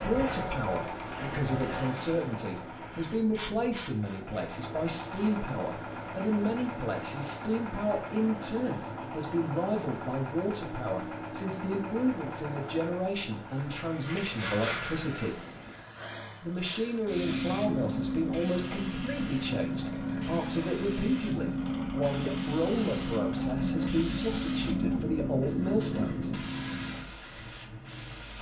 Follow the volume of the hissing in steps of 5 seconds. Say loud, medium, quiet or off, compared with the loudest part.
medium, off, medium, loud, loud, loud.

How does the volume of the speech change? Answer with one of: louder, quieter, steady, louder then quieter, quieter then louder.
steady.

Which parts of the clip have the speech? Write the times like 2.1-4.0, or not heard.
0.0-15.4, 16.4-26.3.